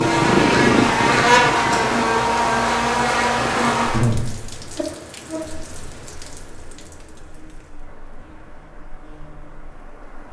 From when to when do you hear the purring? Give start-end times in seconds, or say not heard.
0.0-4.0.